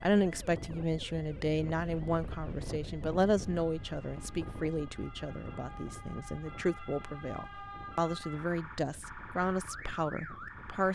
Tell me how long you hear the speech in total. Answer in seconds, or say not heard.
11 s.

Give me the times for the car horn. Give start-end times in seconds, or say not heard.
not heard.